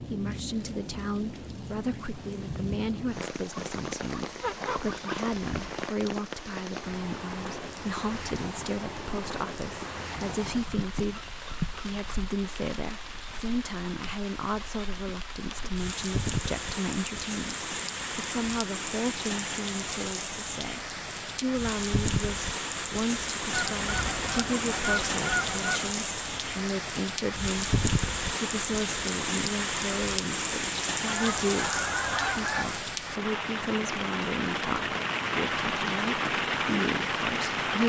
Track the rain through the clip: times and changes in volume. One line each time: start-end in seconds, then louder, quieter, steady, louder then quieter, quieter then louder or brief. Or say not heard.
0.0-37.8 louder.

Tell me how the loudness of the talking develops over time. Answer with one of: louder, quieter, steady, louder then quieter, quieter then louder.
steady.